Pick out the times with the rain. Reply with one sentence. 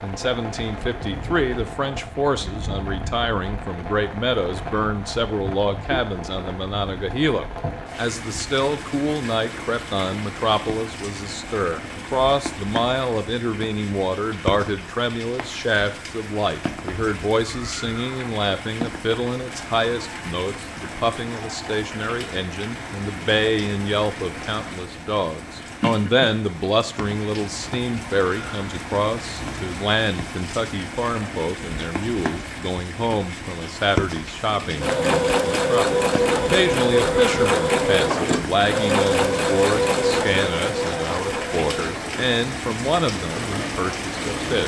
The rain can be heard from 0.0 to 44.6 s.